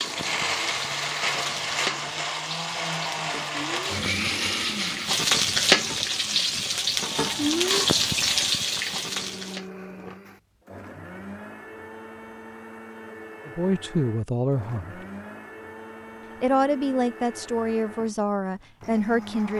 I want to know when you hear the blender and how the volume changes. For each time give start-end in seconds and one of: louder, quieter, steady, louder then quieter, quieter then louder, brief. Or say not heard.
0.0-19.5 quieter.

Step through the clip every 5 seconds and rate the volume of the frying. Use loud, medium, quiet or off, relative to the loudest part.
medium, loud, off, off.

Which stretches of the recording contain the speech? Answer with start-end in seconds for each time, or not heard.
13.4-14.9, 16.4-19.5.